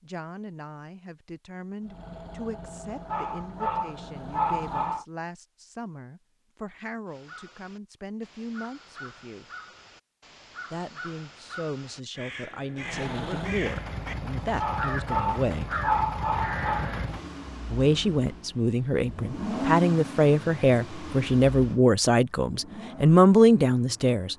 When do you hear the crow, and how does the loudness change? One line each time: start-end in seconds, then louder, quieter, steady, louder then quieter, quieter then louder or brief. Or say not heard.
7.0-17.1 louder.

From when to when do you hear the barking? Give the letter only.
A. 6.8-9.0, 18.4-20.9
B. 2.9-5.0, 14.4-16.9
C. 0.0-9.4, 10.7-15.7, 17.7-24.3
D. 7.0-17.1
B.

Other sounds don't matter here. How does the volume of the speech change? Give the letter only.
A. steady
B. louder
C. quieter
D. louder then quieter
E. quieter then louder
B.